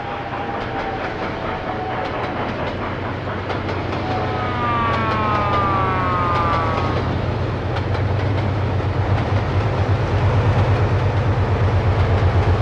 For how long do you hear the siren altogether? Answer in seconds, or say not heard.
3 s.